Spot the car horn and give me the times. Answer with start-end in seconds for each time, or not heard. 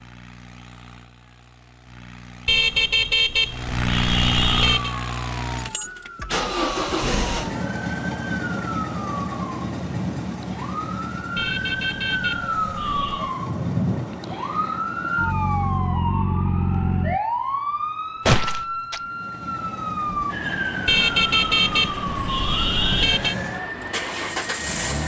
2.5-5.0, 11.3-13.3, 20.9-23.4.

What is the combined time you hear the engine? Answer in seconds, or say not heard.
22 s.